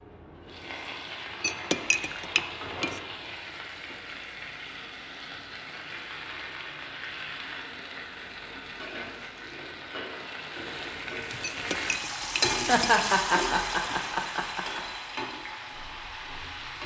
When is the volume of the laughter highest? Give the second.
13 s.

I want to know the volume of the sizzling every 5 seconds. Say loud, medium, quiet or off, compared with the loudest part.
medium, medium, loud, medium.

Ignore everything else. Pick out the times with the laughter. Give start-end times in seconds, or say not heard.
12.7-14.8.